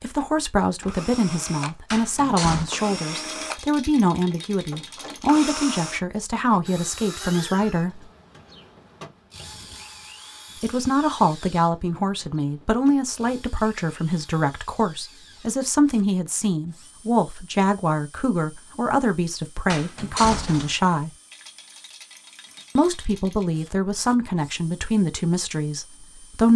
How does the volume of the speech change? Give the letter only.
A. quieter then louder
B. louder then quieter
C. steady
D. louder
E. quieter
C.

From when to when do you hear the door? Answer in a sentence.
The door can be heard from 1.9 to 2.7 s and from 19.7 to 20.8 s.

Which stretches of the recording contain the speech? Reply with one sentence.
You can hear the speech from 0.0 to 8.1 s, from 10.6 to 21.1 s and from 22.8 to 26.5 s.